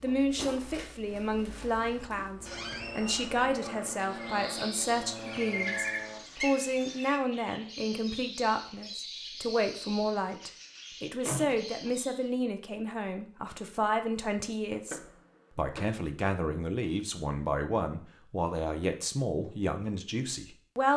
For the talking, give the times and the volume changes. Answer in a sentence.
The talking can be heard from 0.0 to 20.9 s, at a steady volume.